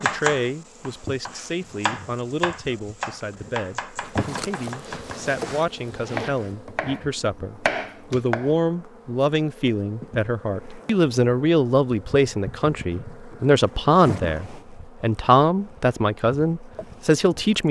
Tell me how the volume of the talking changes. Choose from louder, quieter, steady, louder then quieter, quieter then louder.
louder.